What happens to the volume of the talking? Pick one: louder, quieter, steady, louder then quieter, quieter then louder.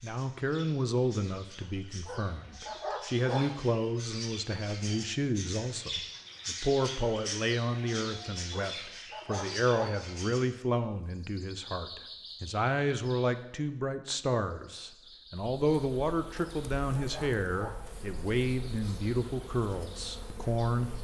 steady.